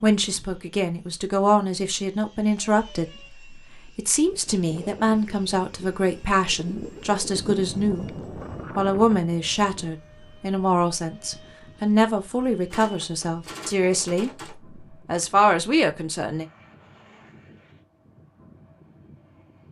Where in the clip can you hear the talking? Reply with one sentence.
The talking can be heard from 0.0 to 8.1 s, from 8.8 to 14.3 s and from 15.1 to 16.4 s.